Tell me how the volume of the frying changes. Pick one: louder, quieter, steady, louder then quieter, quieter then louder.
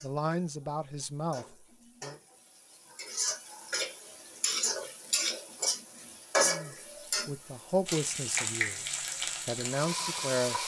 louder.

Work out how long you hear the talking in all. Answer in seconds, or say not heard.
6 s.